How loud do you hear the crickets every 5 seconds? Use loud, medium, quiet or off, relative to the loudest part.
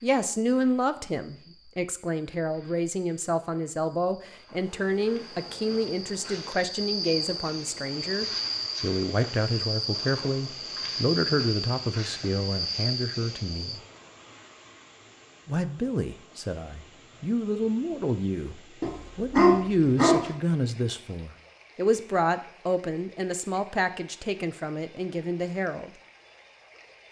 quiet, loud, loud, off, off, off.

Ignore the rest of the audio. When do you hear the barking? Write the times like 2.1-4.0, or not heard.
18.8-20.3.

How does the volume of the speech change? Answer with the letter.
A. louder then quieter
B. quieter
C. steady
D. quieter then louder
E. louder
C.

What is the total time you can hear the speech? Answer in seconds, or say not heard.
24 s.